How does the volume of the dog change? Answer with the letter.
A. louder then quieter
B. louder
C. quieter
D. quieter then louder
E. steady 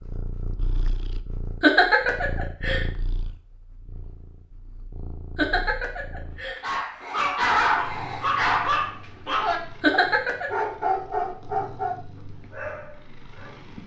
C.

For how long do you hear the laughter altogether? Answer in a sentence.
You can hear the laughter for 3 seconds altogether.